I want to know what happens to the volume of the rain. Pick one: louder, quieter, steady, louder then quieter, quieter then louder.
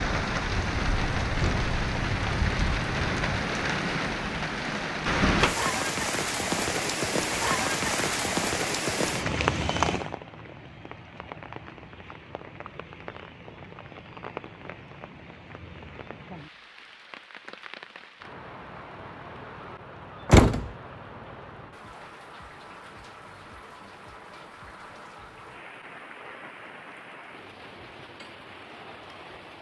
quieter.